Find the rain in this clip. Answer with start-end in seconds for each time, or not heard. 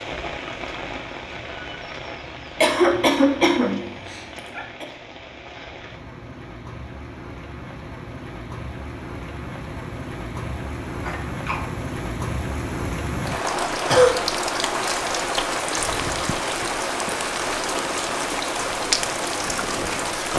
0.0-20.3.